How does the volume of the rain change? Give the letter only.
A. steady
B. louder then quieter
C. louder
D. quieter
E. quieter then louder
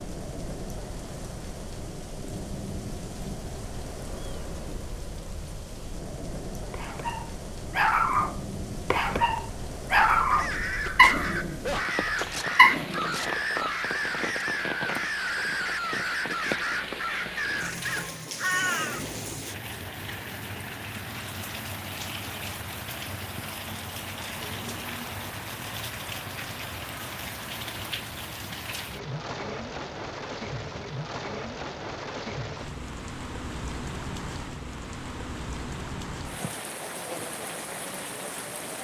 A.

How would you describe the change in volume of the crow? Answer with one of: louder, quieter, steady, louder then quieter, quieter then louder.
steady.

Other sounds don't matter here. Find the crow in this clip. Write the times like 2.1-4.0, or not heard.
10.2-19.1.